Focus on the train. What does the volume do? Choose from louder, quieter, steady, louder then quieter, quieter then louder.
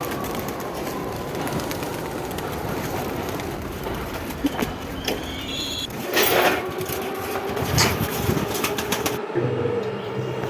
steady.